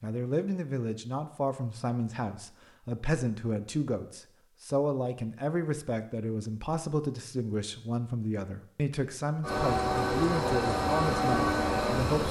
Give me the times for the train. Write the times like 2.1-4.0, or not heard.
9.4-12.2.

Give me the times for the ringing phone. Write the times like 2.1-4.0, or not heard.
not heard.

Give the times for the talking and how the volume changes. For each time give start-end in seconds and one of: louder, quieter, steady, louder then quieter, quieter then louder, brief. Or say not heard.
0.0-12.2 steady.